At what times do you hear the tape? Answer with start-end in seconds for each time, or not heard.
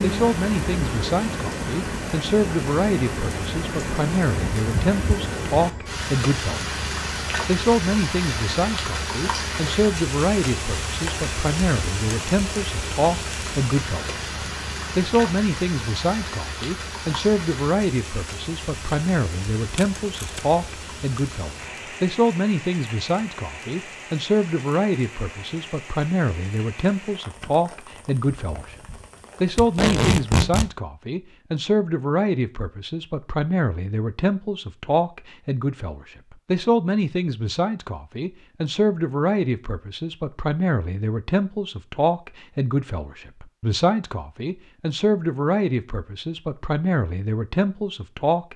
19.8-20.6, 29.6-30.7.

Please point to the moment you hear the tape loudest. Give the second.
30 s.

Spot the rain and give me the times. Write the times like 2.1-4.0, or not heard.
0.0-30.5.